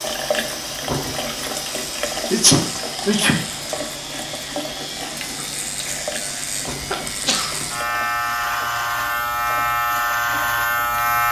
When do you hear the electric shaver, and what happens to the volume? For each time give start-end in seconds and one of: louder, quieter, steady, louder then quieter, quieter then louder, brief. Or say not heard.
0.0-11.2 louder.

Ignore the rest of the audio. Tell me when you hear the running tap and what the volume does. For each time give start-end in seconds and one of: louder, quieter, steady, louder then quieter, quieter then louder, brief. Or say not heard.
0.0-11.2 quieter.